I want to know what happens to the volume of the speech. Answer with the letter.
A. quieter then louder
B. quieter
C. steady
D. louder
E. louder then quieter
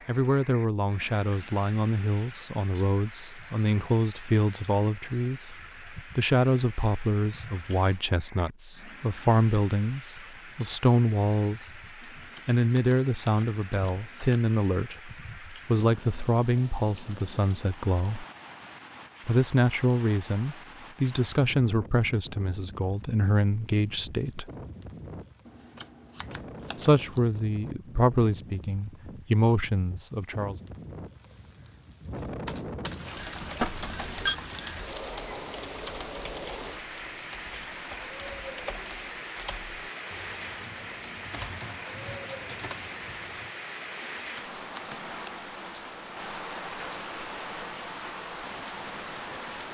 C.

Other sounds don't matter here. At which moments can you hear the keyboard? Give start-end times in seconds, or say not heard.
32.1-43.5.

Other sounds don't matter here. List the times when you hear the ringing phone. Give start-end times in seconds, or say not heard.
33.6-34.4.